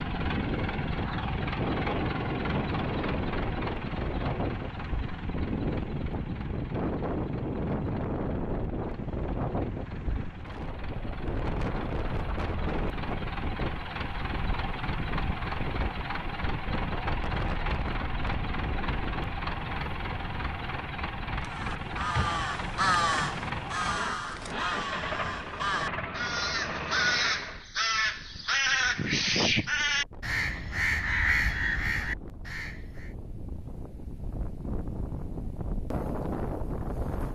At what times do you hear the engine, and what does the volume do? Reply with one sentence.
You can hear the engine from 0.0 to 27.6 s, getting quieter then louder.